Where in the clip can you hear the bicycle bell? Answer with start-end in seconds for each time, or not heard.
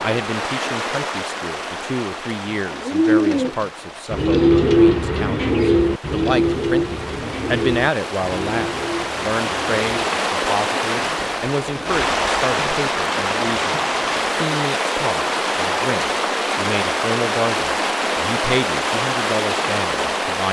not heard.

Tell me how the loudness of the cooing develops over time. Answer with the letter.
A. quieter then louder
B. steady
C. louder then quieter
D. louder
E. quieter
E.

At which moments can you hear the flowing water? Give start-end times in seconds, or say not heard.
0.0-20.4.